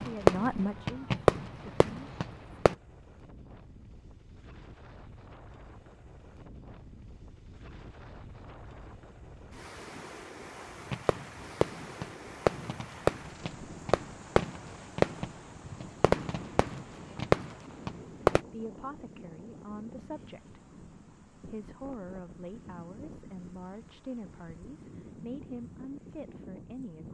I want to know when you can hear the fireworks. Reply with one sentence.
You can hear the fireworks from 0.0 to 2.8 s and from 10.9 to 18.4 s.